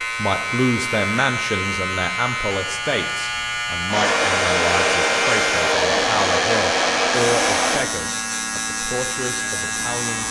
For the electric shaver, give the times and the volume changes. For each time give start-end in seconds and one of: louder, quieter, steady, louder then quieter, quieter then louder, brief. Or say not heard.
0.0-10.2 steady.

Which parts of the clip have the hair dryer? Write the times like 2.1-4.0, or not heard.
3.9-7.8.